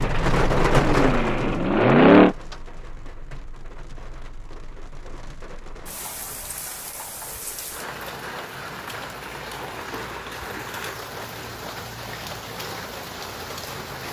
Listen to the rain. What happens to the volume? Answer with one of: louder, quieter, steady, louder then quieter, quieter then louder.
quieter then louder.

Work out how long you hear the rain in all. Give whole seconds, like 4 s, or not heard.
14 s.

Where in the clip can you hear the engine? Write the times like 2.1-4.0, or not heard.
0.0-2.4.